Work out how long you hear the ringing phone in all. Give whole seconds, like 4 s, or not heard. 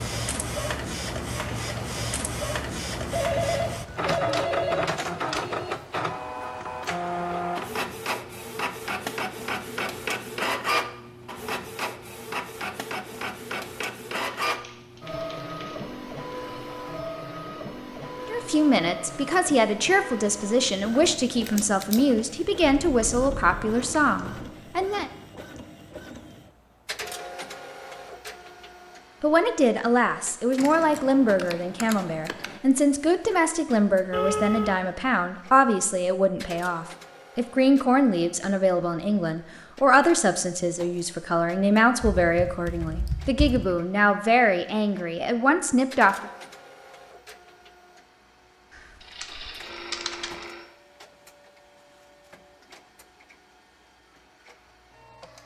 4 s.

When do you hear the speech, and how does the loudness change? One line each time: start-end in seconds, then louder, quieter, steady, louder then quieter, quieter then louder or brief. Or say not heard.
18.2-25.1 steady
29.2-46.3 steady.